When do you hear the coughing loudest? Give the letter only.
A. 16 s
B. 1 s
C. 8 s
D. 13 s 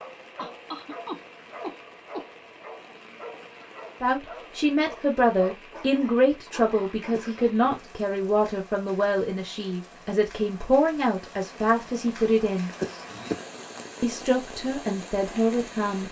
D.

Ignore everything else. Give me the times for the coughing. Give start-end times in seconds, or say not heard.
0.3-2.2, 7.1-7.7, 12.8-13.4.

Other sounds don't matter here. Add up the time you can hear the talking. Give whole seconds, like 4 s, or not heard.
11 s.